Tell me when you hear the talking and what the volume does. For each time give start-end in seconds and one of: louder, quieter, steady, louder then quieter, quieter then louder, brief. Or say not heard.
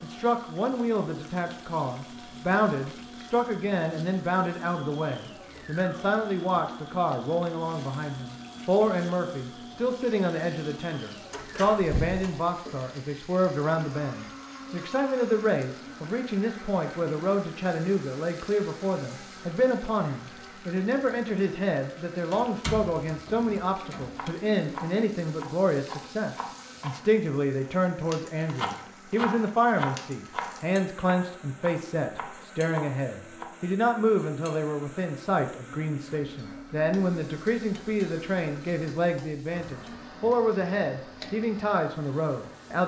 0.0-42.8 steady.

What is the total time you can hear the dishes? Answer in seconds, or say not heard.
not heard.